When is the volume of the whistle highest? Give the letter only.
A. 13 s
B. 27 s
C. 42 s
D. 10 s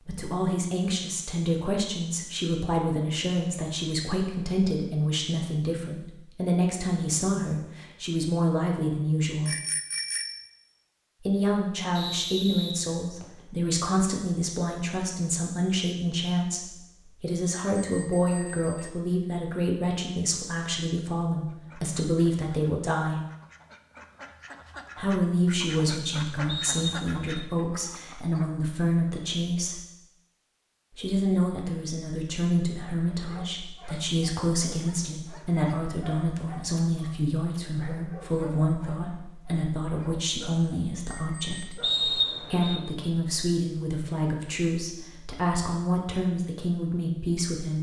C.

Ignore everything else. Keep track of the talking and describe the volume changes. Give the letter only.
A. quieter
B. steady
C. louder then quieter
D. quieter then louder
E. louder
B.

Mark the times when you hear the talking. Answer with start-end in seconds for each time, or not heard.
0.1-9.6, 11.2-23.2, 24.9-29.9, 30.9-41.8, 42.5-47.7.